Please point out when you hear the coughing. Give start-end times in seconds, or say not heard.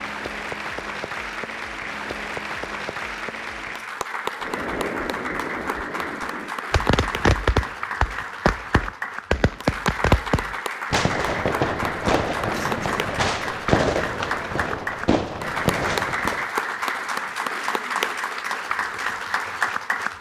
12.5-13.2.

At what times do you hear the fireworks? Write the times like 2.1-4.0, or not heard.
4.4-16.4.